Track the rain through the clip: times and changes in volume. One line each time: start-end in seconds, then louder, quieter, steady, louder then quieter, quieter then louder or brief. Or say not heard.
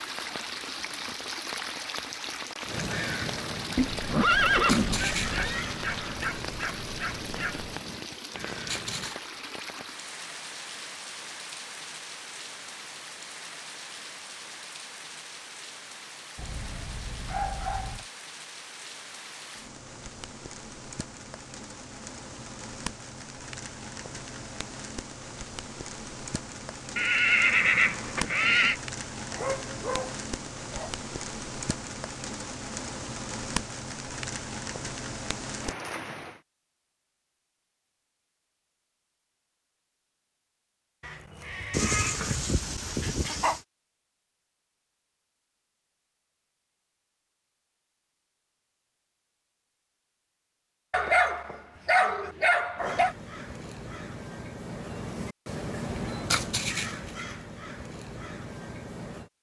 0.0-36.4 quieter then louder.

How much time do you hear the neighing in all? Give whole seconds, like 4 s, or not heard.
5 s.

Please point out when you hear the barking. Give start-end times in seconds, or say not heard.
5.2-7.7, 16.4-18.1, 29.3-30.9, 41.7-43.6, 50.9-53.1.